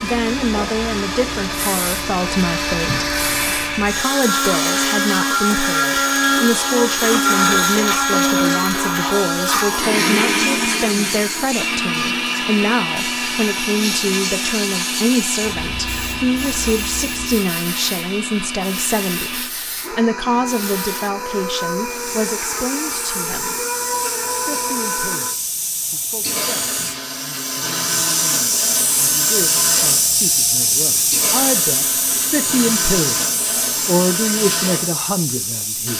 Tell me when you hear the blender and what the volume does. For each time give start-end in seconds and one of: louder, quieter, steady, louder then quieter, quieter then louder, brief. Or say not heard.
0.0-35.9 quieter.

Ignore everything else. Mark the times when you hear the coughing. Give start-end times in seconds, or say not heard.
not heard.